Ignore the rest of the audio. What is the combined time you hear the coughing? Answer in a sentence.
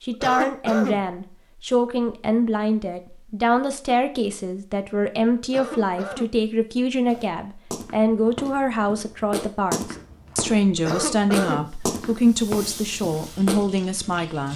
You can hear the coughing for 3 seconds altogether.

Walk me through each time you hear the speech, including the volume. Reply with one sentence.
The speech can be heard from 0.0 to 14.5 s, at a steady volume.